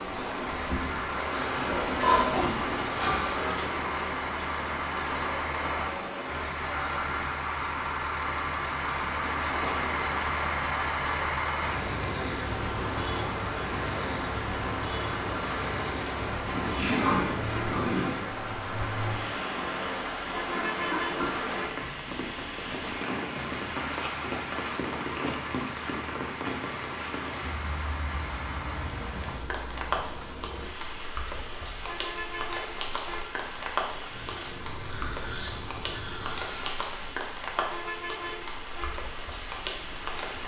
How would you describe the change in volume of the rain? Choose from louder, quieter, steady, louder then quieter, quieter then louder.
steady.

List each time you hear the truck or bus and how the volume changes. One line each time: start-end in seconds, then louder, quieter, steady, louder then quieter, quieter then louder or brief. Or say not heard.
0.0-40.4 quieter.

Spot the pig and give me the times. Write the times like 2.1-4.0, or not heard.
1.3-3.8, 16.5-18.3, 20.5-21.9, 34.1-36.8.